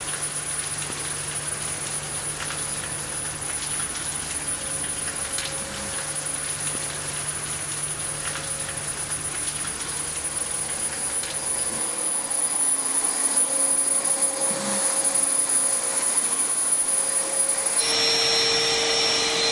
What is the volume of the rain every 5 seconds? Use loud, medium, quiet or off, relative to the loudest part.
loud, loud, medium, medium.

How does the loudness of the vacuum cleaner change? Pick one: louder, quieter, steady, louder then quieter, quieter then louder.
louder.